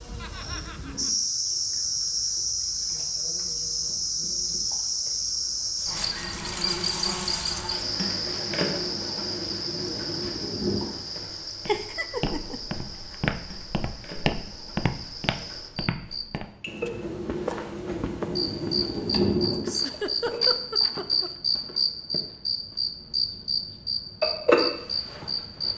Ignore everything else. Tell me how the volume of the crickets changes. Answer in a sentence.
The volume of the crickets goes down, then up.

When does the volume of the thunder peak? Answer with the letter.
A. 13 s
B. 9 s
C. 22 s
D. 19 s
D.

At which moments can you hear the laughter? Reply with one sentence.
The laughter can be heard from 0.2 to 1.1 s, from 11.7 to 12.6 s and from 19.6 to 21.3 s.